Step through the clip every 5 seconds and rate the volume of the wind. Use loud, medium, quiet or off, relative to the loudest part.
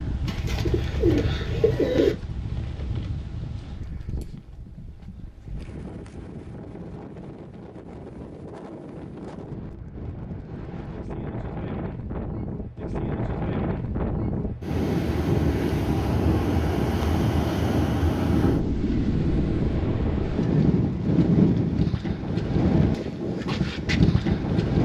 medium, quiet, medium, loud, loud.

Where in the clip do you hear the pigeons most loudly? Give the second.
2 s.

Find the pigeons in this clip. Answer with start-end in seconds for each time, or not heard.
0.2-2.1.